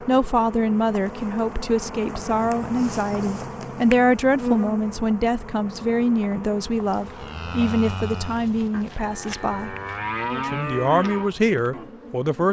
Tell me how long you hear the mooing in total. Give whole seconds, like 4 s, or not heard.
5 s.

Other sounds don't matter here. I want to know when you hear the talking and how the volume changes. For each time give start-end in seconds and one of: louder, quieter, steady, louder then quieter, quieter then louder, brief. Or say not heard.
0.0-9.8 steady
10.4-12.4 brief.